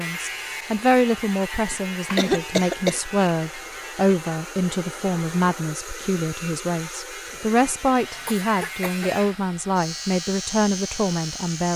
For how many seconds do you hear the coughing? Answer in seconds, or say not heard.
3 s.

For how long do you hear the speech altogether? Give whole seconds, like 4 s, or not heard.
12 s.